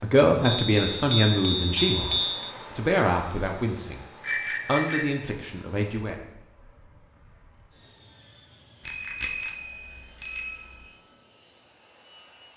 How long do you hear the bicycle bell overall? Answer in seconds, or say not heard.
5 s.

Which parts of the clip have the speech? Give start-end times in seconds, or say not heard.
0.0-6.2.